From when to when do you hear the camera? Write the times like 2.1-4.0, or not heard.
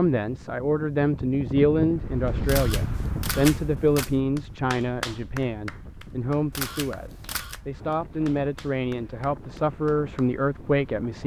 2.5-4.1, 6.5-7.6.